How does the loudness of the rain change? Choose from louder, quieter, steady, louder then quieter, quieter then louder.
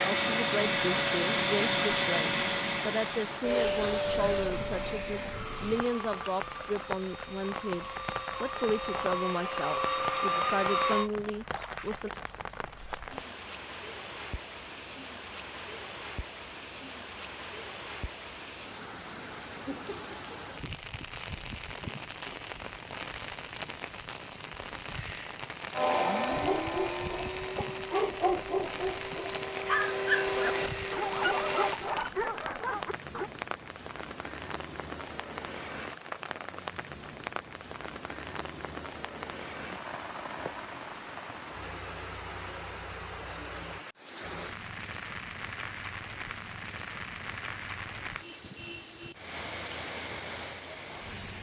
steady.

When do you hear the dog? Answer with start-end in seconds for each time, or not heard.
26.3-33.3.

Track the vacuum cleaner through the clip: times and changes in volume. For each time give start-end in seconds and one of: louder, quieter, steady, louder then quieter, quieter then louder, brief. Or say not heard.
0.0-11.1 quieter then louder
25.7-31.8 quieter then louder.